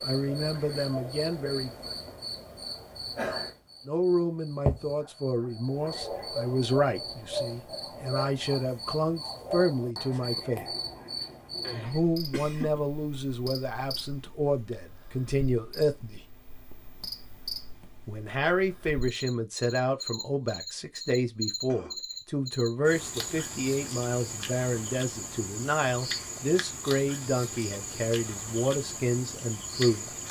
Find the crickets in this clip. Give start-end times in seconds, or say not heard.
0.0-30.2.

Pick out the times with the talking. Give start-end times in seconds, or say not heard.
0.0-1.7, 3.9-10.7, 11.7-16.3, 18.1-30.1.